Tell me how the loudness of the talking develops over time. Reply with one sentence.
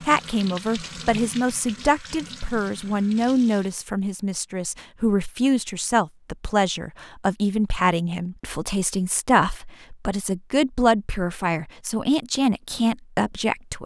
The volume of the talking stays about the same.